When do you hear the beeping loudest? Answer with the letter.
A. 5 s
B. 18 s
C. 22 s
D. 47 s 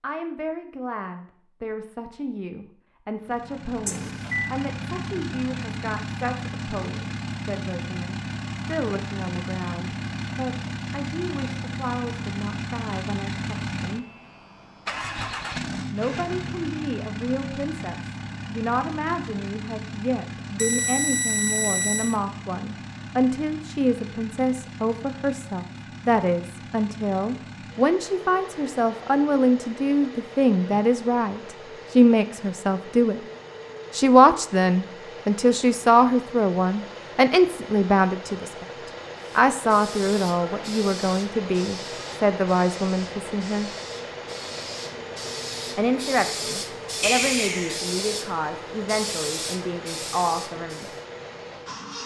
D.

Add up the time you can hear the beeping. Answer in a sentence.
The beeping can be heard for 3 seconds in total.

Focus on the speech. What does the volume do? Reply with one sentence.
The volume of the speech goes up, then down.